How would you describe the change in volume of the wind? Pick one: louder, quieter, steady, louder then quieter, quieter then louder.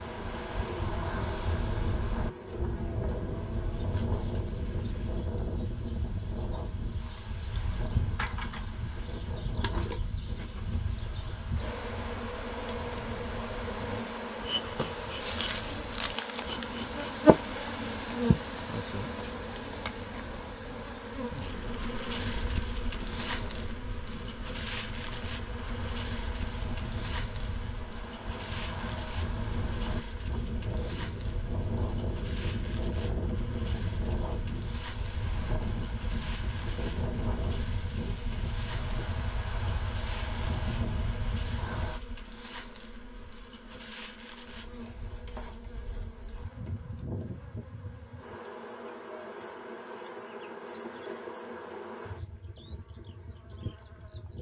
quieter then louder.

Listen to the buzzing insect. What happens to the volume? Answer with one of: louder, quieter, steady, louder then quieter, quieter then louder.
louder then quieter.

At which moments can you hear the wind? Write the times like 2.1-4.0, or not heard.
0.0-42.0.